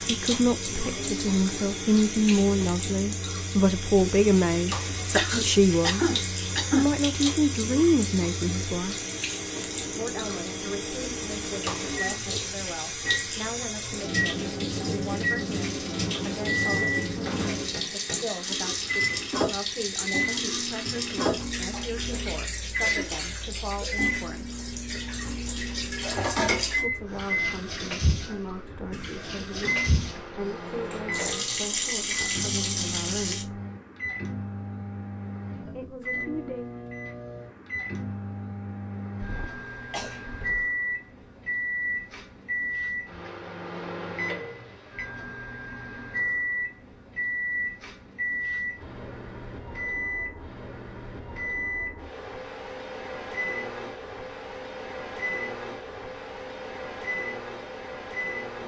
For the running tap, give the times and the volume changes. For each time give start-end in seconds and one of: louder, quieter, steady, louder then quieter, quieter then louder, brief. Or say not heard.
0.0-33.5 steady.